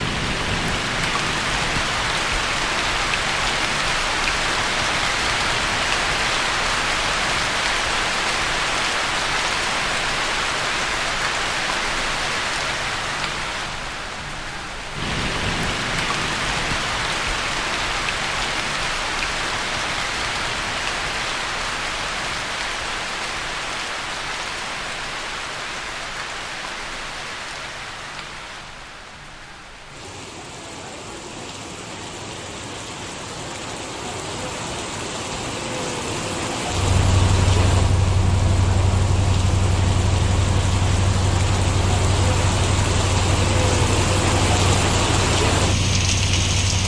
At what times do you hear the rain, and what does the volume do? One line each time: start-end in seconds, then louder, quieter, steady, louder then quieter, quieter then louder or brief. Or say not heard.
0.0-46.8 quieter then louder.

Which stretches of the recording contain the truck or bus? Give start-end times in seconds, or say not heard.
36.6-46.8.